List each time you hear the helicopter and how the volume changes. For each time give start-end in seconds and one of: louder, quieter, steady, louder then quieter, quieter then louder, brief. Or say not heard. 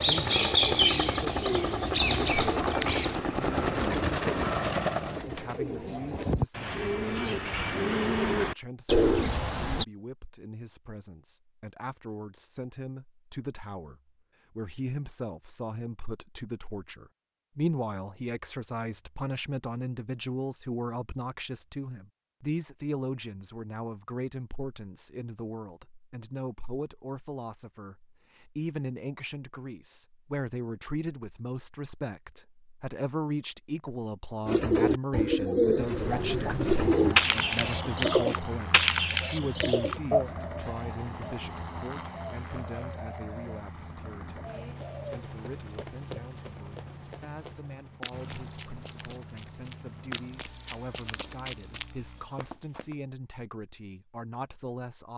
0.0-5.2 steady
35.8-52.5 quieter.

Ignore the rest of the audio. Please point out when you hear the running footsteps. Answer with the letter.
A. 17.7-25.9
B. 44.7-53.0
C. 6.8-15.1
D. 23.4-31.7
B.